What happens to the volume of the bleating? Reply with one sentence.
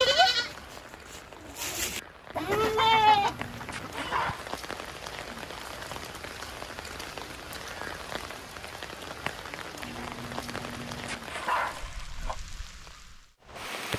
The volume of the bleating goes up, then down.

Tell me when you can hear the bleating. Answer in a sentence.
The bleating can be heard from 0.0 to 4.3 s.